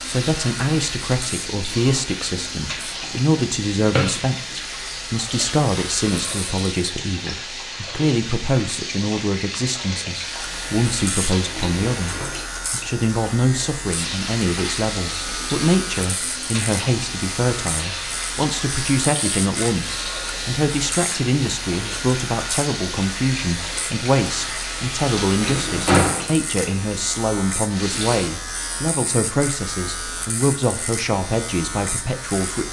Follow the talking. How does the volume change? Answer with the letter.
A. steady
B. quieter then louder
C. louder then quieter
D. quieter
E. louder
A.